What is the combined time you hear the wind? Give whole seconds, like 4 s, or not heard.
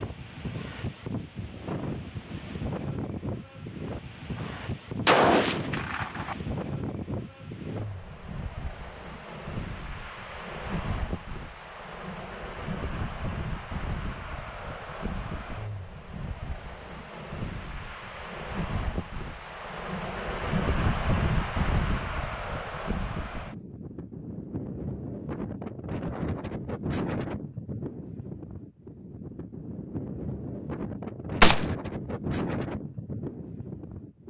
34 s.